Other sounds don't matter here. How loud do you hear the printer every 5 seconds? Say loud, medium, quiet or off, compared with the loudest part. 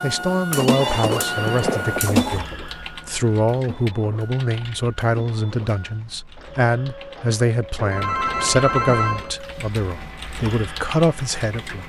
loud, quiet, quiet.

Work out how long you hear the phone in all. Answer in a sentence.
The phone can be heard for 3 seconds in total.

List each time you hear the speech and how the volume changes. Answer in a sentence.
You can hear the speech from 0.0 to 11.8 s, at a steady volume.